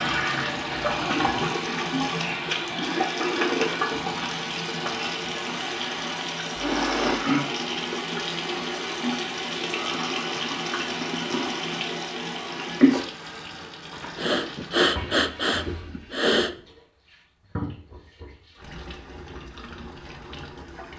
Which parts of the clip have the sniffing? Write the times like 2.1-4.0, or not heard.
6.5-7.2, 14.2-16.6.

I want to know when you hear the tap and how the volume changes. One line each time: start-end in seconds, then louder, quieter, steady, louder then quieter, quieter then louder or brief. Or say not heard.
0.0-20.9 quieter.